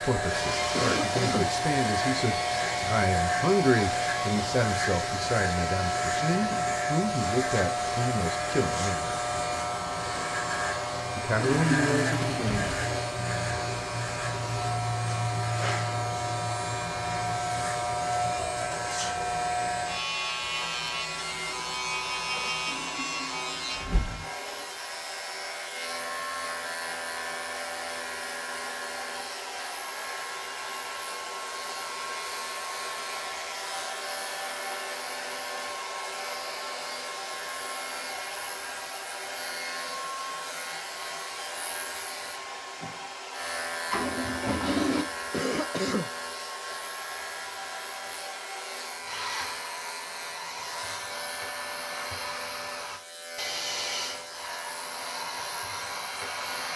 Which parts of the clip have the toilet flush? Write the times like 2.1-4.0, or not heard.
11.4-13.2, 22.6-24.6, 43.9-45.0.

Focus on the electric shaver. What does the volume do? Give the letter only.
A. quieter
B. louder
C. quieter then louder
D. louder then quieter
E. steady
A.